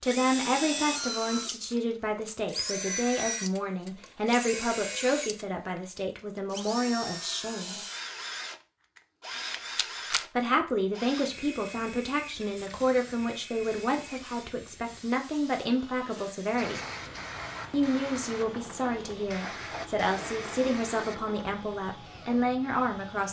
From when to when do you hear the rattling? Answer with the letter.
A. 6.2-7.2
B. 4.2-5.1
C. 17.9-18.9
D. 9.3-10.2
D.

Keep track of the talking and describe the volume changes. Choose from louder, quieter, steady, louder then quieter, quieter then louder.
steady.